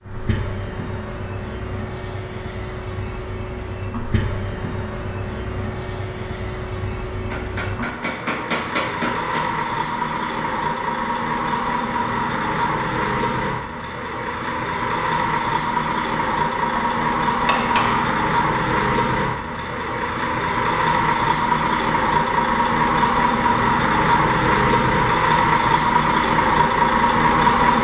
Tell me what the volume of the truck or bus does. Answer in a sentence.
The volume of the truck or bus goes up.